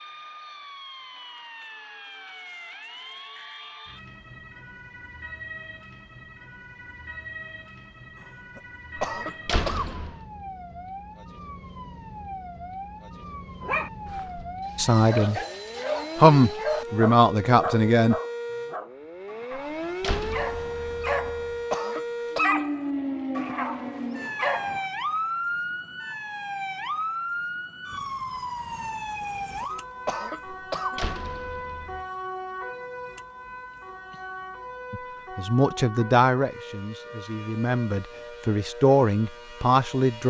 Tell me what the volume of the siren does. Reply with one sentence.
The volume of the siren goes up, then down.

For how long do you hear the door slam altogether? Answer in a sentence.
You can hear the door slam for 5 seconds altogether.